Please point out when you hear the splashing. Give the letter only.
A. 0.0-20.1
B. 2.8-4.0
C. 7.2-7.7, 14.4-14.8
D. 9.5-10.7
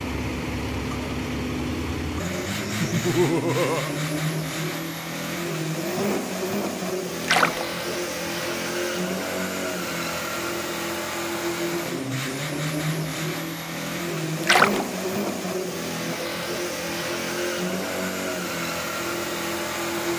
C.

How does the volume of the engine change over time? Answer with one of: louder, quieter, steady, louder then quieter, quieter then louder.
steady.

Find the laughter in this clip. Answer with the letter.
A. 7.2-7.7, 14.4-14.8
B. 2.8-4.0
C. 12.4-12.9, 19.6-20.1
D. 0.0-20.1
B.